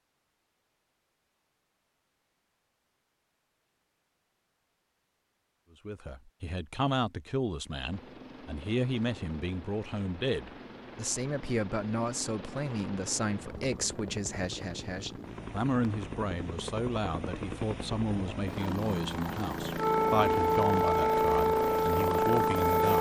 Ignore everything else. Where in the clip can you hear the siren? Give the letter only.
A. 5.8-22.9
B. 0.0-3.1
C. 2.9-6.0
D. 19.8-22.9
D.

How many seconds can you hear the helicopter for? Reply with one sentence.
The helicopter can be heard for 15 seconds in total.